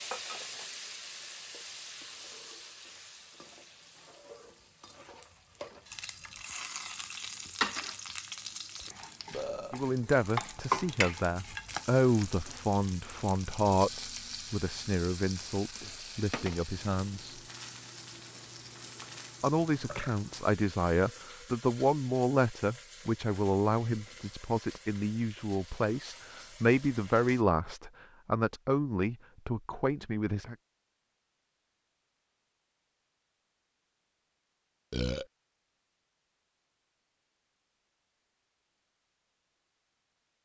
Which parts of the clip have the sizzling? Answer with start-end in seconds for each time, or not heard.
0.0-27.4.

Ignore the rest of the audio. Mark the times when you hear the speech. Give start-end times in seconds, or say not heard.
9.7-17.4, 19.4-30.6.